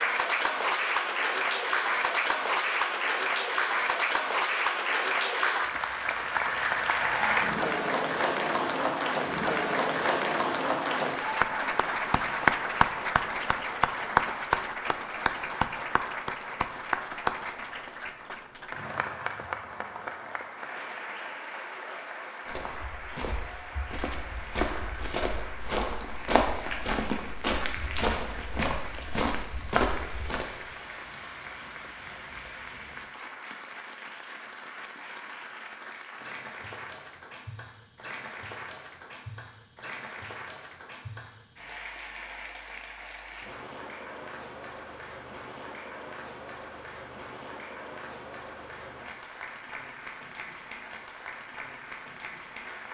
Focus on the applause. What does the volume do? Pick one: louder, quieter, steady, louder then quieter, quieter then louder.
quieter.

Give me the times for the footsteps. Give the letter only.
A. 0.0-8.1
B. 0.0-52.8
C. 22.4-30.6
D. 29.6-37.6
C.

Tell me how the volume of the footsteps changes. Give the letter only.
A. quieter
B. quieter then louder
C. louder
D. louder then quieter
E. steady
C.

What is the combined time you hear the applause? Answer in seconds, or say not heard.
53 s.